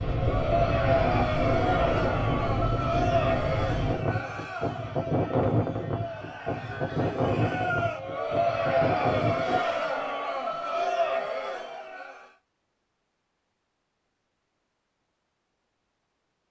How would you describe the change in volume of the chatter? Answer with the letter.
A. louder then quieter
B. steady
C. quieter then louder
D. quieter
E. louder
C.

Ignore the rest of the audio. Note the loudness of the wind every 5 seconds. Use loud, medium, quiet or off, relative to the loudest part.
loud, loud, off, off.